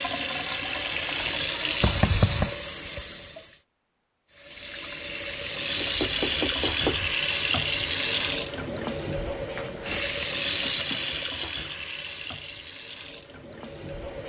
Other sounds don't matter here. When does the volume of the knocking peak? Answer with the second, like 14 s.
2 s.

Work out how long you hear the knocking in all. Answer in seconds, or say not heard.
3 s.